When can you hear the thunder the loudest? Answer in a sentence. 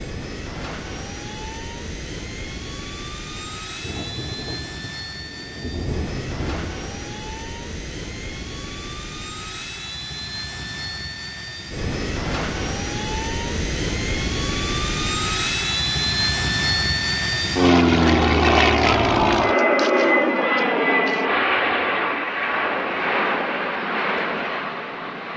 The volume of the thunder peaks at 6 seconds.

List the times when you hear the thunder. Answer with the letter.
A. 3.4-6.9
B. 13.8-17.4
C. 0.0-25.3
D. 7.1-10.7
A.